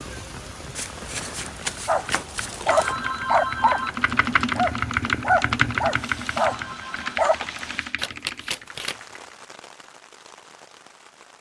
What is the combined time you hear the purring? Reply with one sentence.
The purring can't be heard in this clip.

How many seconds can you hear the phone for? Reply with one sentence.
You can hear the phone for 2 seconds altogether.